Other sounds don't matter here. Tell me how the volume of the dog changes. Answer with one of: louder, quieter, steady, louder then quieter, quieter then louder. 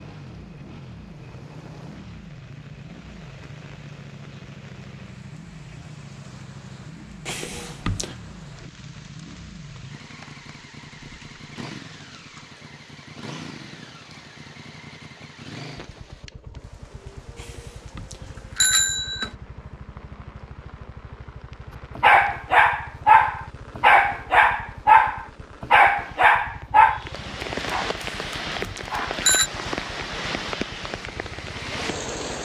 quieter.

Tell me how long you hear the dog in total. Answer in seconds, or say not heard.
7 s.